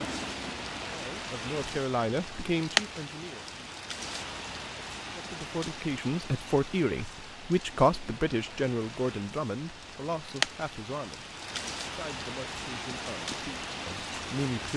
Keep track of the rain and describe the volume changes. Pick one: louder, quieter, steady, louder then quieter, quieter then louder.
quieter then louder.